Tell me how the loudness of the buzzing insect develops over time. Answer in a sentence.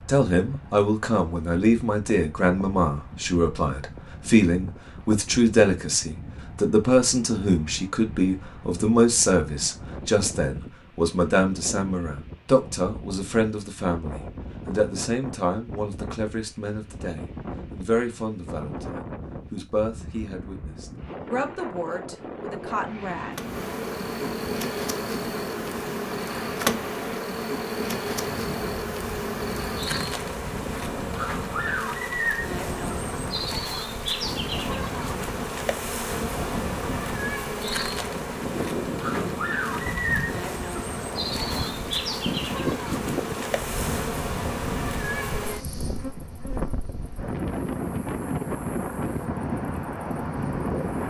The loudness of the buzzing insect goes down.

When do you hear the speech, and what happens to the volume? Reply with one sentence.
The speech can be heard from 0.1 to 23.4 s, getting quieter.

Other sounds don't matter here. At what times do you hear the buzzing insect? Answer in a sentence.
You can hear the buzzing insect from 23.4 to 51.0 s.